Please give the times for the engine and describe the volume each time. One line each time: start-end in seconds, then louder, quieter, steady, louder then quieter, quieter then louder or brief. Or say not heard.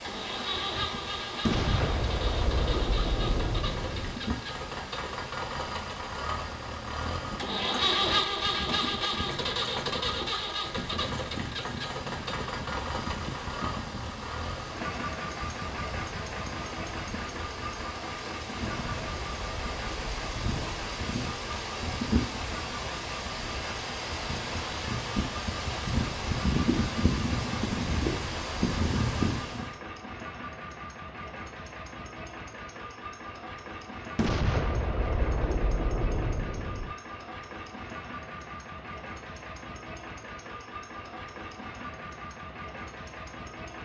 0.0-43.8 quieter.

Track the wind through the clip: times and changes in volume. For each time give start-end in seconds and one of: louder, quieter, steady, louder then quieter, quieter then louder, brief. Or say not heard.
0.0-29.7 louder.